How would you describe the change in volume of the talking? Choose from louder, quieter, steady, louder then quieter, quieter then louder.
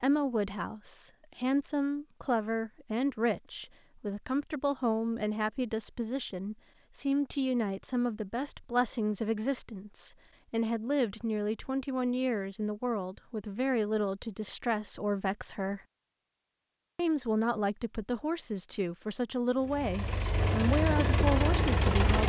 steady.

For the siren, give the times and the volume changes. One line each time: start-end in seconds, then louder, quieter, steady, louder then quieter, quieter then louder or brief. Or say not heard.
not heard.